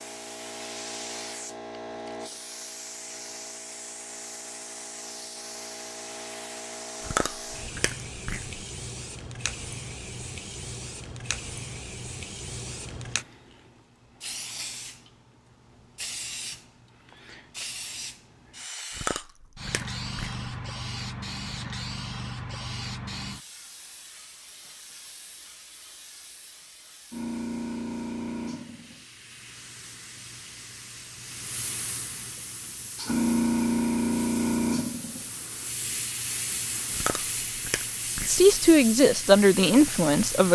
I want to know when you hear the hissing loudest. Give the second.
34 s.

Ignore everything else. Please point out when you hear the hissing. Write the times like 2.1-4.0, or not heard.
0.0-40.5.